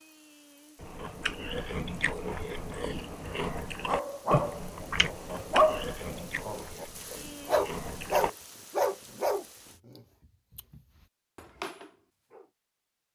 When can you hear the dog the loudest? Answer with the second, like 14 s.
6 s.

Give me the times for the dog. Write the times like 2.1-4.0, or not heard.
3.9-12.4.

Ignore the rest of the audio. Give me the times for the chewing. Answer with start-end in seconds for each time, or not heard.
0.8-8.3.